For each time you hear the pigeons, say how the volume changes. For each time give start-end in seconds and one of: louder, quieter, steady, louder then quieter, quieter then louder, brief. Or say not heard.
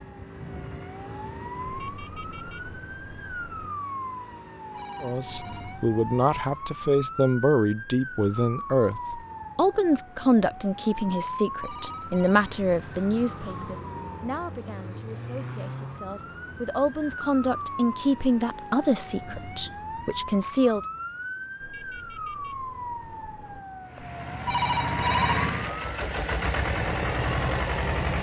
not heard.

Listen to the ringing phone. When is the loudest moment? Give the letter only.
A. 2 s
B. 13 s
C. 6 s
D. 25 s
D.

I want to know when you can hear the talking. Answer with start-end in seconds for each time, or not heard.
5.0-20.8.